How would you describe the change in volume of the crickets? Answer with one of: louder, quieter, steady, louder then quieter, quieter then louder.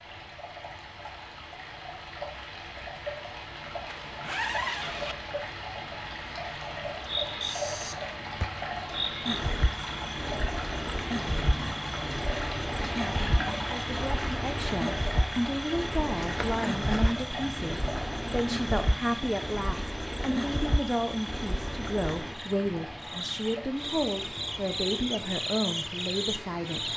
steady.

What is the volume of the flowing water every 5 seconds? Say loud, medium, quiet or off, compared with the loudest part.
medium, loud, loud, loud, medium, medium.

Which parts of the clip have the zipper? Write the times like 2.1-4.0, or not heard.
3.9-5.2, 16.2-17.1.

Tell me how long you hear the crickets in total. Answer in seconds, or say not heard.
20 s.